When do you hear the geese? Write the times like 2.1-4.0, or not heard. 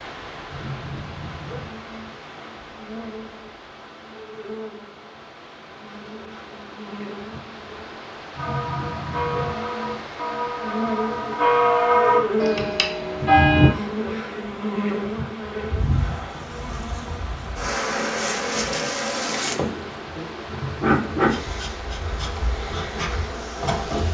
not heard.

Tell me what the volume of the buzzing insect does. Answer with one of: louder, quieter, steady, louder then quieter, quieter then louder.
louder.